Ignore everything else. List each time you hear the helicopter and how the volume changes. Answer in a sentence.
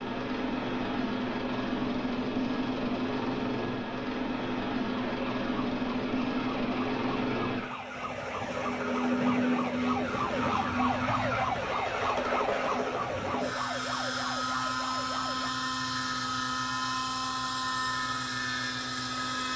The helicopter can be heard from 0.0 to 19.5 s, at a steady volume.